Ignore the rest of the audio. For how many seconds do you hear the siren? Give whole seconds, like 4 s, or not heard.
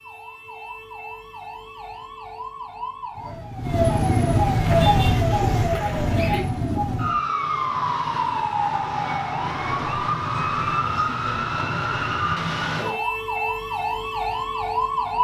15 s.